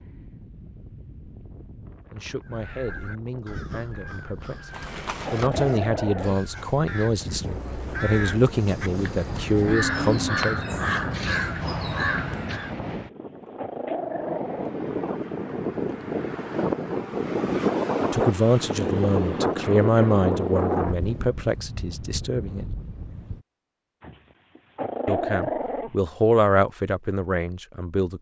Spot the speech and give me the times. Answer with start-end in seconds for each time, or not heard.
2.1-4.7, 5.3-10.6, 18.0-22.6, 25.1-28.1.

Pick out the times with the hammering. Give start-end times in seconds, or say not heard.
not heard.